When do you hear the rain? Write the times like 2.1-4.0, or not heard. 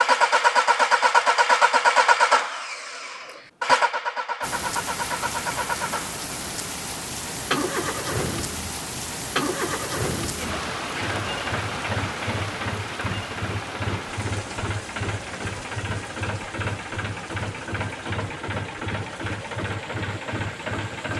4.4-21.1.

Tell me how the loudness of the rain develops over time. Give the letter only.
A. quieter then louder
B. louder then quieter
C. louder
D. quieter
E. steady
D.